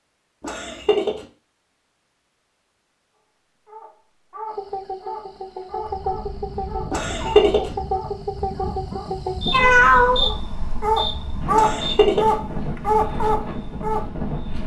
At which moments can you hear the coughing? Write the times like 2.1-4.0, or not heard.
0.4-1.2, 6.9-7.8, 11.5-12.3.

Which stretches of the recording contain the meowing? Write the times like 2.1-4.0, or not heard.
9.1-10.2.